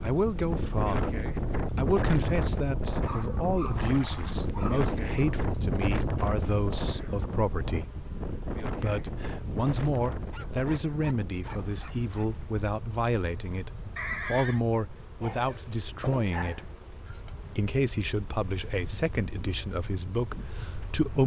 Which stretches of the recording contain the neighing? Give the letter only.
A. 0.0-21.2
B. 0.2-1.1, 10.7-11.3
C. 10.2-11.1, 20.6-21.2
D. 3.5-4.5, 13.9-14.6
D.